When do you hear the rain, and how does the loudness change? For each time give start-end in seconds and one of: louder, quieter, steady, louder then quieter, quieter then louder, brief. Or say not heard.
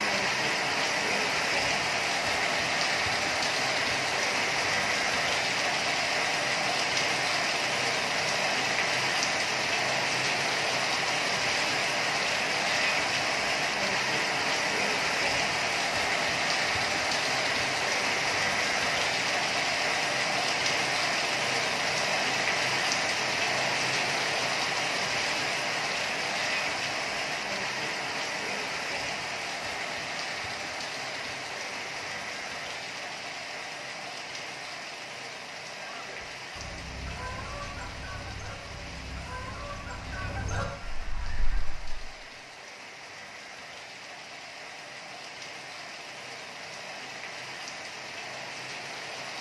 0.0-49.3 quieter.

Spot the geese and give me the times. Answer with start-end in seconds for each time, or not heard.
35.8-42.1.